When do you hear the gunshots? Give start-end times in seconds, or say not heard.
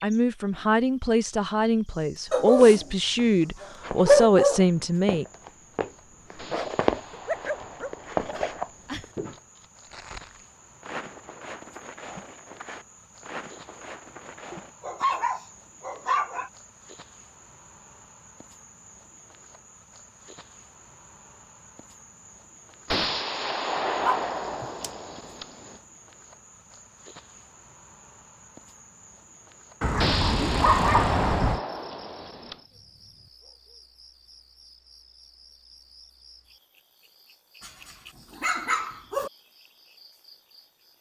6.3-9.7, 22.9-25.8, 29.9-32.6.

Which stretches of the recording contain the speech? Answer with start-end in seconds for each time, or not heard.
0.0-5.2.